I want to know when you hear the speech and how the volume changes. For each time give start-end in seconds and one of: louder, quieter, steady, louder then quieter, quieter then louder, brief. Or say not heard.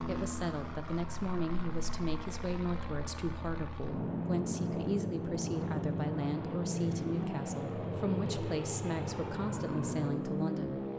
0.1-10.9 steady.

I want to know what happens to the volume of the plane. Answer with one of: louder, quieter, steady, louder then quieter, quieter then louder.
louder.